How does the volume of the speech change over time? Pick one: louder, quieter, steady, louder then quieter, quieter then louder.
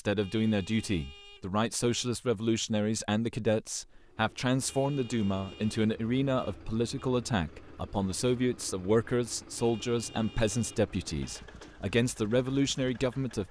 steady.